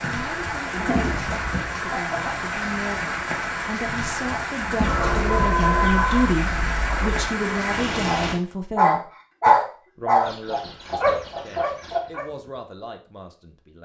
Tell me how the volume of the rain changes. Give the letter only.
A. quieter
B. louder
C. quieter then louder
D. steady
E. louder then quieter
D.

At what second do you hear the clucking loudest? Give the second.
6 s.